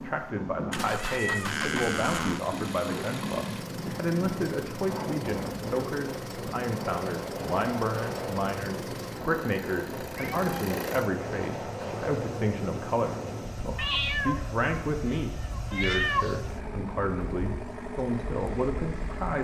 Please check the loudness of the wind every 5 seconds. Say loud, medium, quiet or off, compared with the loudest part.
loud, loud, loud, medium.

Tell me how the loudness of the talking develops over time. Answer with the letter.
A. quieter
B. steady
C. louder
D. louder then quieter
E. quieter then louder
B.